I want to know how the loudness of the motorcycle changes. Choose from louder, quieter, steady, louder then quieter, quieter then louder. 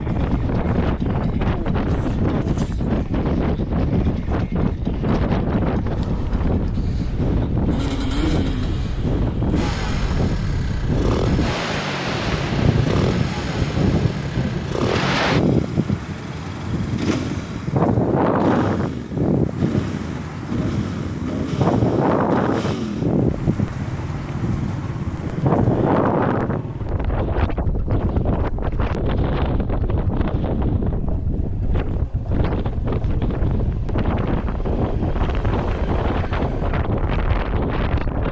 quieter.